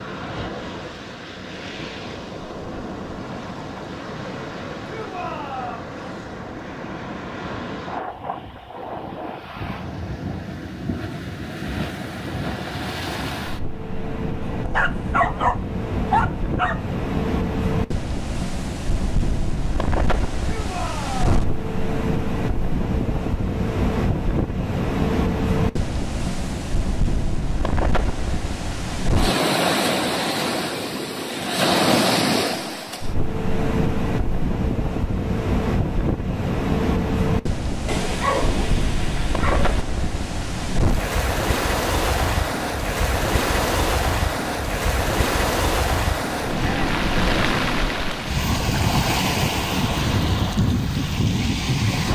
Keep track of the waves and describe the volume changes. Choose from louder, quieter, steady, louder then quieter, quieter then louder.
louder.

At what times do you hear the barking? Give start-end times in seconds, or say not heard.
14.4-16.9, 37.9-39.9.